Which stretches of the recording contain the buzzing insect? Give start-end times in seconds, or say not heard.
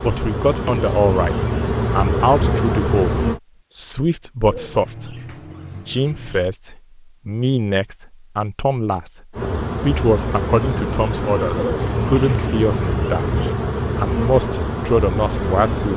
0.0-3.4, 9.3-15.9.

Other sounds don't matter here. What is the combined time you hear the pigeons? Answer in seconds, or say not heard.
4 s.